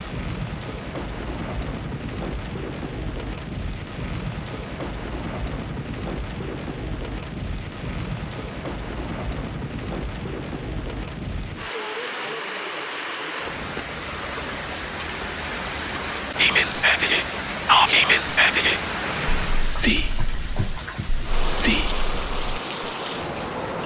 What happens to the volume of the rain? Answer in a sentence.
The loudness of the rain stays about the same.